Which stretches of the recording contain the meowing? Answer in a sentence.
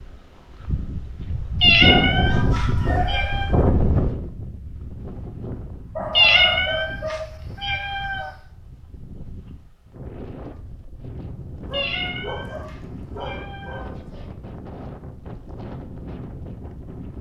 You can hear the meowing from 1.6 to 3.5 s, from 6.2 to 8.3 s and from 11.7 to 14.2 s.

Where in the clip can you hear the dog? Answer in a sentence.
You can hear the dog from 1.9 to 3.5 s, from 6.0 to 7.3 s and from 11.7 to 14.3 s.